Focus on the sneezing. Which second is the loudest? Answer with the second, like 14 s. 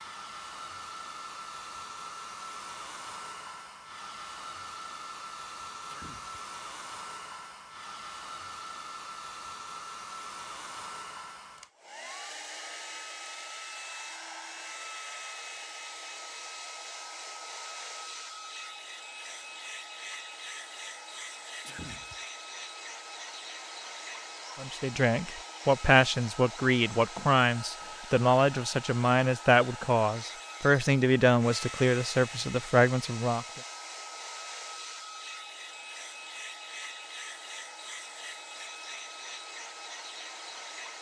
22 s.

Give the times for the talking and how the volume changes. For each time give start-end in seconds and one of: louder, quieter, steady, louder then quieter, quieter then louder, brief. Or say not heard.
24.6-33.5 steady.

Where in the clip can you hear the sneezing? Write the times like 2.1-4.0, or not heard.
5.8-6.4, 21.6-22.2.